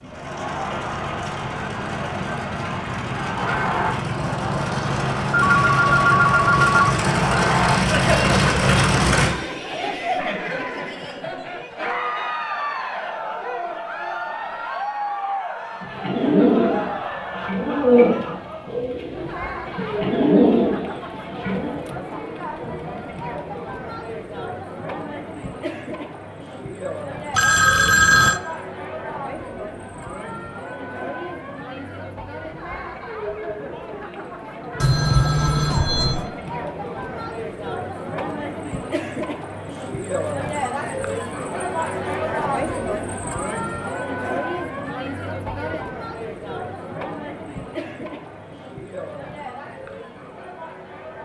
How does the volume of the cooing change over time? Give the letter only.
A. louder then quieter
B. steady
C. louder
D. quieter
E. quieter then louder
E.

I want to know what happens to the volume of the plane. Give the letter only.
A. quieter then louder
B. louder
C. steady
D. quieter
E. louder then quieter
B.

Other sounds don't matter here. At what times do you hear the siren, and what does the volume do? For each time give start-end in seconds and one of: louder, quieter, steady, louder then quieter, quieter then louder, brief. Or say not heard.
not heard.